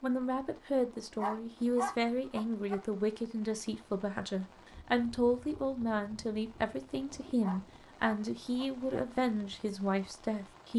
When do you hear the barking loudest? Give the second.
2 s.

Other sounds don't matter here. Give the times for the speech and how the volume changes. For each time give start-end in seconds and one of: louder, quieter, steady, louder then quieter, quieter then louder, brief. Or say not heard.
0.0-10.7 steady.